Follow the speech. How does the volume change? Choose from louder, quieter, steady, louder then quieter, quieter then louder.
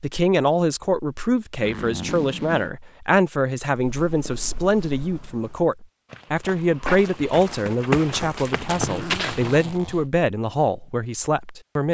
steady.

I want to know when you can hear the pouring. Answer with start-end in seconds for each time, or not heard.
not heard.